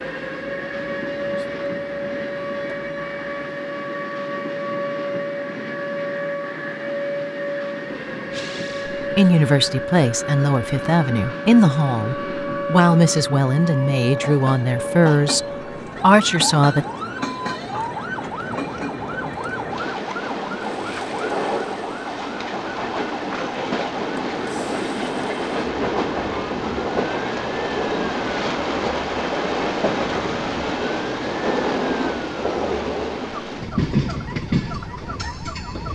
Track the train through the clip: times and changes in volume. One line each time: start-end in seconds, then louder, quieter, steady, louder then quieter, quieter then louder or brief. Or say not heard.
0.0-35.9 louder.